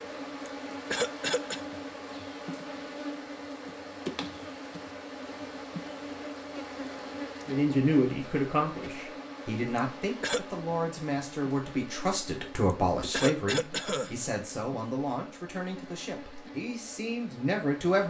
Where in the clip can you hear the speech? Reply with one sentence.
You can hear the speech from 7.5 to 18.0 s.